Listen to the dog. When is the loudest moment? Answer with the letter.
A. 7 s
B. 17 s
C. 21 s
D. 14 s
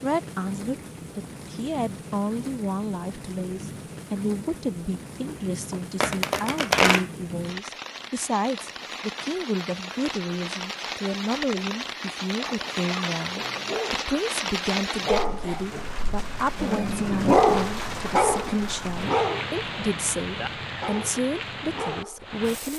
B.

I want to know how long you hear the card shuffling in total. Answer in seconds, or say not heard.
2 s.